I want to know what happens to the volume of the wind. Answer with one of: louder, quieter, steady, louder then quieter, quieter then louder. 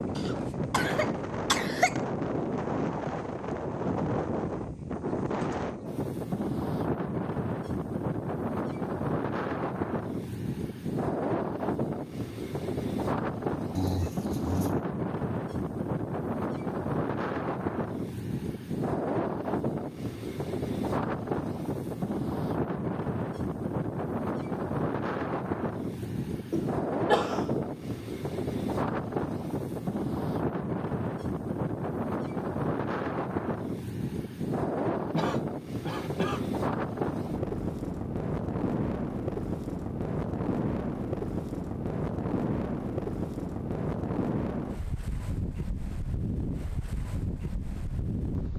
steady.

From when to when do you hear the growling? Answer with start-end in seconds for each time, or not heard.
13.8-14.8.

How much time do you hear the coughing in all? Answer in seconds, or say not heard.
5 s.